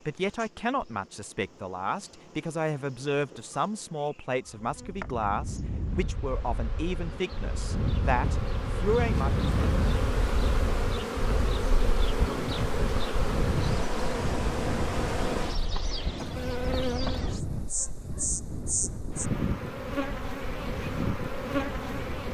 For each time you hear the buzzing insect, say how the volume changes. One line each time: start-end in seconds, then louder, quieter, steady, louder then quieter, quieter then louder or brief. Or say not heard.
0.0-22.2 louder.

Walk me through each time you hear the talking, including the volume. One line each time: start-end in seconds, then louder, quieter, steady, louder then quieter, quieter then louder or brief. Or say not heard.
0.1-9.4 steady.